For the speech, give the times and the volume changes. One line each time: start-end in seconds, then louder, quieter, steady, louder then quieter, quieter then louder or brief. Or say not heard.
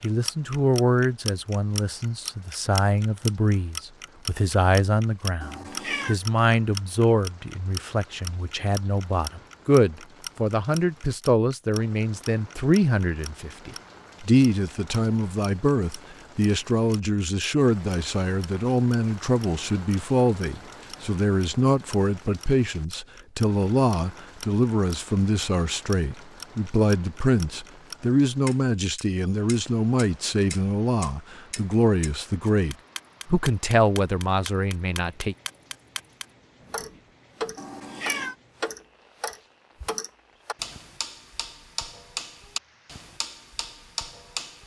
0.0-35.4 steady.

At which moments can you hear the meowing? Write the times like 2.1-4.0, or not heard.
5.4-6.2, 37.5-38.4.